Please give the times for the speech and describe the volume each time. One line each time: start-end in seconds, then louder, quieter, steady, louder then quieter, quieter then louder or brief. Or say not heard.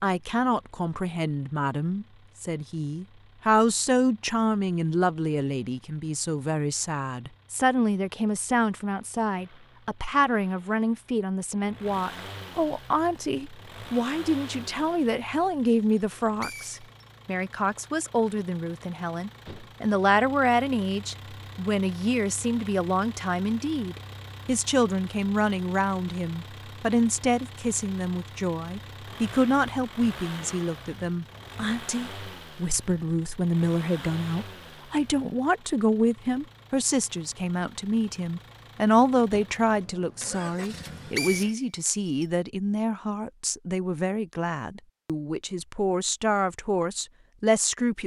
0.0-48.0 steady.